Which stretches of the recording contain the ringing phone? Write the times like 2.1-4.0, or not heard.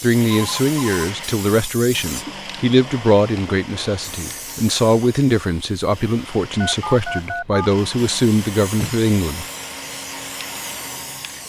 0.3-1.1, 6.6-7.7.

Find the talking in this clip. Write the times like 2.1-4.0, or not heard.
0.0-9.4.